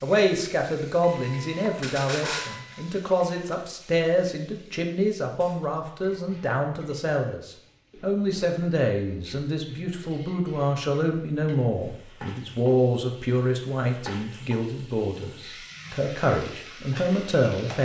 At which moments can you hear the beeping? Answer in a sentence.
The beeping can be heard from 1.0 to 2.8 s.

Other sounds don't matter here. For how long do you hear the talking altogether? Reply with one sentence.
You can hear the talking for 18 seconds altogether.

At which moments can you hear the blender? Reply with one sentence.
The blender can't be heard in this clip.